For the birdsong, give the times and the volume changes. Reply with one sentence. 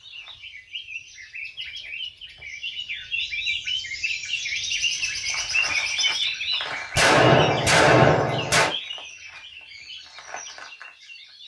The birdsong can be heard from 0.0 to 11.4 s, getting louder then quieter.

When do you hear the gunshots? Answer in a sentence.
You can hear the gunshots from 7.0 to 8.8 s.